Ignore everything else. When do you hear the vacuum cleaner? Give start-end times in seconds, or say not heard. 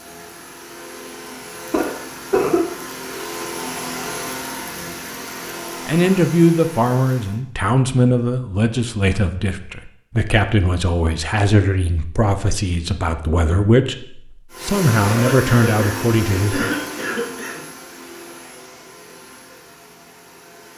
0.0-7.4, 14.5-20.7.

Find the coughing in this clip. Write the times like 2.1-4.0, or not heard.
1.7-2.6, 15.0-17.6.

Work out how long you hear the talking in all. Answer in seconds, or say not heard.
11 s.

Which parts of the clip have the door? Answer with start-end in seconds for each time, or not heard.
not heard.